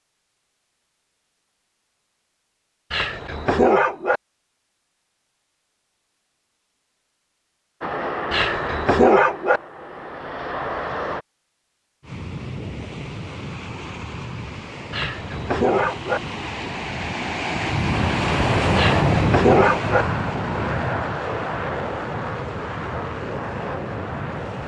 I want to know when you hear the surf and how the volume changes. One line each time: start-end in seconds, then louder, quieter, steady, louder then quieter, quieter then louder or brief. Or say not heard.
12.0-24.6 louder then quieter.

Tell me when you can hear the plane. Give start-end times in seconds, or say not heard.
7.8-11.2, 17.9-24.6.